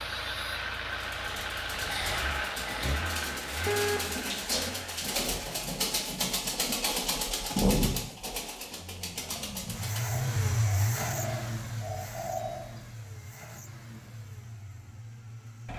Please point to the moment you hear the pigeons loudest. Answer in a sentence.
The loudest moment of the pigeons is at 8 seconds.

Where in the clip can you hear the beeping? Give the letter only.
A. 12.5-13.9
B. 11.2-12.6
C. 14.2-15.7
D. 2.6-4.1
D.